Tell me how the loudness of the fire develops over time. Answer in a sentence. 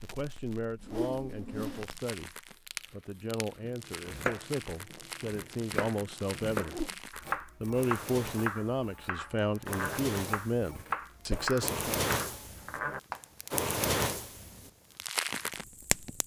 The volume of the fire goes up.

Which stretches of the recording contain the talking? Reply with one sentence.
The talking can be heard from 0.0 to 6.8 s and from 7.6 to 11.9 s.